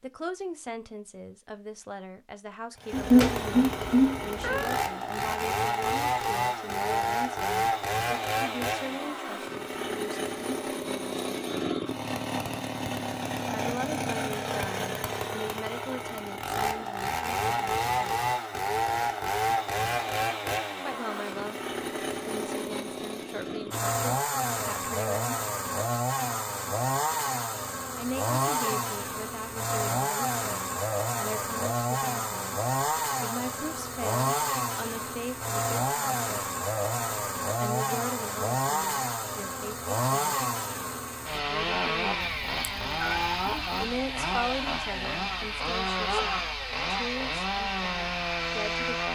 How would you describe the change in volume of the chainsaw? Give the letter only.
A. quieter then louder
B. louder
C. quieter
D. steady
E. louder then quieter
D.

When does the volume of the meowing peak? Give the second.
3 s.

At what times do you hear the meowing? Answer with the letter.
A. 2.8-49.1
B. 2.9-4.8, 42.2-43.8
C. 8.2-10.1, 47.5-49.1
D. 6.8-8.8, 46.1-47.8
B.